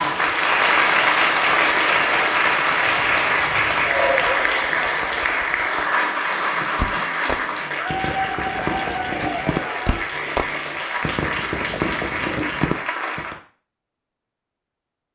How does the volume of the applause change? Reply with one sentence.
The volume of the applause goes down.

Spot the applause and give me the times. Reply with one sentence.
The applause can be heard from 0.0 to 13.4 s.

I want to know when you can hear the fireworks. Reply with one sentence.
The fireworks can be heard from 6.6 to 13.4 s.